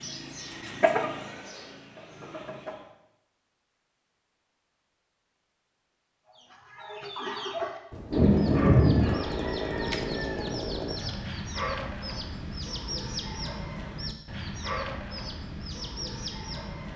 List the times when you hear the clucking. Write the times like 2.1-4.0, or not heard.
0.0-2.9, 6.3-16.9.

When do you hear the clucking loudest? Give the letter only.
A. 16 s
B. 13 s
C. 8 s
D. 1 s
D.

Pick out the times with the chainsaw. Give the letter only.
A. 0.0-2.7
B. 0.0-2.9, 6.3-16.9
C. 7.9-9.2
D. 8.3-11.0
D.